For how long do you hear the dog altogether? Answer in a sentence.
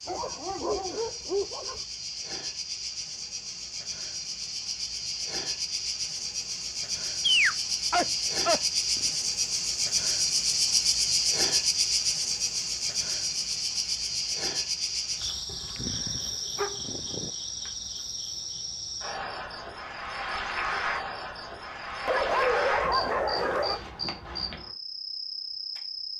You can hear the dog for 7 seconds altogether.